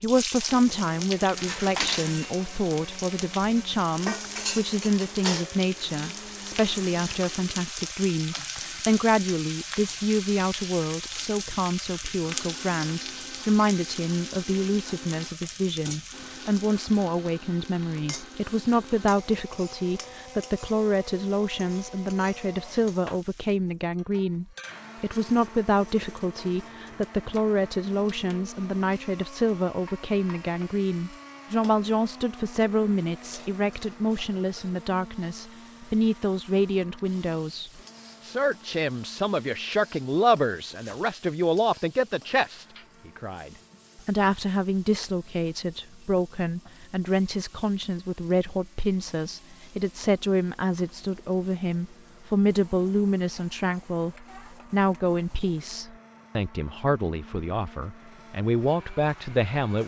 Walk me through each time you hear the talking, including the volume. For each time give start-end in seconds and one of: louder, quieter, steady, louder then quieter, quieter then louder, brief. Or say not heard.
0.0-59.8 steady.